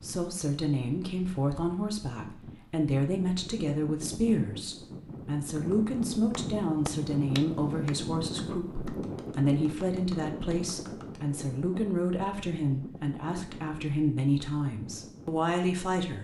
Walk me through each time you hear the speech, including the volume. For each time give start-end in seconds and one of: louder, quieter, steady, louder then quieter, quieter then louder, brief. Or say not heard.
0.0-16.1 steady.